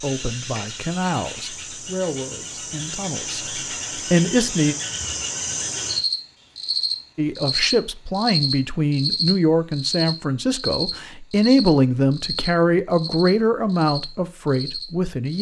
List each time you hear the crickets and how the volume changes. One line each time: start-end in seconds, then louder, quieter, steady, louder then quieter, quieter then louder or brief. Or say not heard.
0.0-15.3 louder then quieter.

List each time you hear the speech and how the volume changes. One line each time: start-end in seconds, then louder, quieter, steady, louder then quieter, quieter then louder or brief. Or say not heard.
0.0-4.8 quieter then louder
7.2-15.3 steady.